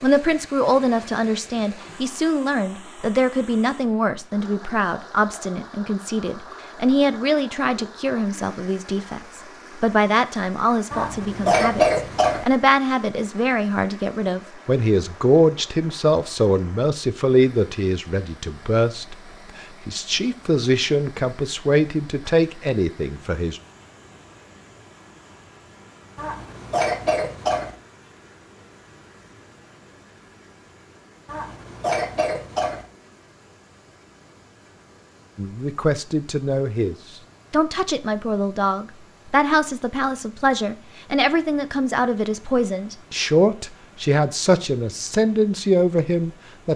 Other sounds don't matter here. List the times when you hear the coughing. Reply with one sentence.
You can hear the coughing from 10.9 to 12.4 s, from 26.1 to 27.8 s and from 31.2 to 32.9 s.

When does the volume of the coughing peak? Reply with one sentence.
The loudest moment of the coughing is at 12 seconds.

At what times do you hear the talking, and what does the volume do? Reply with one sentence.
You can hear the talking from 0.0 to 23.6 s, at a steady volume; and from 35.4 to 46.7 s, at a steady volume.